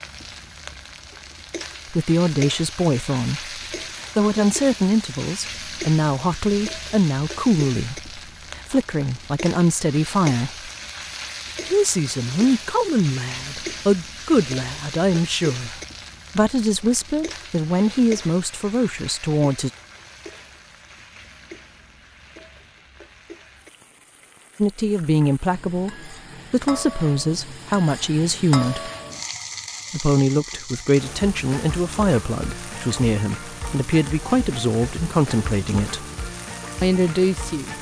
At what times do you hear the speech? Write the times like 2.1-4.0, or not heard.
1.9-10.7, 11.7-19.7, 24.6-28.9, 29.9-36.0, 36.8-37.7.